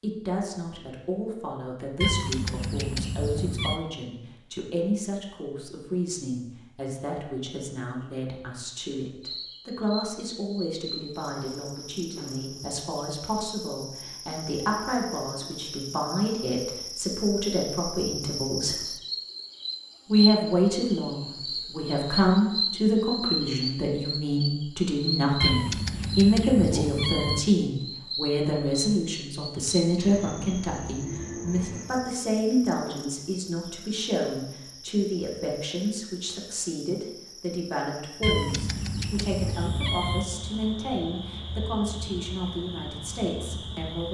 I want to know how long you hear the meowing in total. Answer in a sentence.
The meowing can be heard for 6 seconds in total.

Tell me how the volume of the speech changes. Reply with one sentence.
The volume of the speech goes up, then down.